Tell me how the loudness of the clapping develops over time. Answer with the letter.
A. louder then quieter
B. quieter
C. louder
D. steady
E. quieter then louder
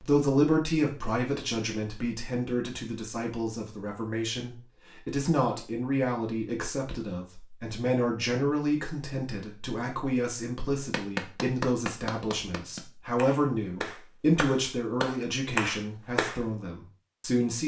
E.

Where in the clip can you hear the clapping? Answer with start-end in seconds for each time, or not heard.
10.9-16.4.